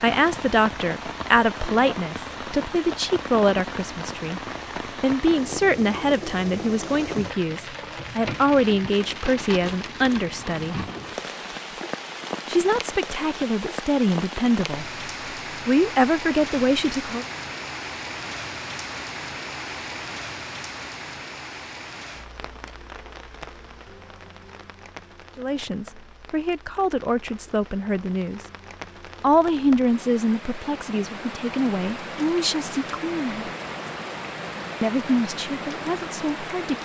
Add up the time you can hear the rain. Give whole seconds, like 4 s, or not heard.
37 s.